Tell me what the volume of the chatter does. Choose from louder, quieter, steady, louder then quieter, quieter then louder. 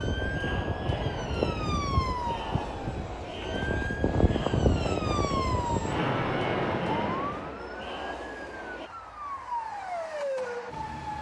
steady.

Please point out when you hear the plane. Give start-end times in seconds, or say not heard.
0.0-7.6.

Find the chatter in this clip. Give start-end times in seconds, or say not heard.
0.0-8.9.